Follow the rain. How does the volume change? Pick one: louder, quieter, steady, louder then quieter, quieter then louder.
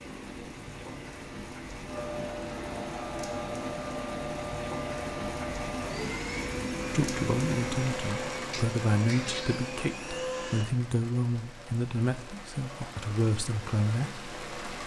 louder then quieter.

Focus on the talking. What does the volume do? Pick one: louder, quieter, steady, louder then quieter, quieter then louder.
steady.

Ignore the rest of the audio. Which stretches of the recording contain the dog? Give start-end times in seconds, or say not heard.
not heard.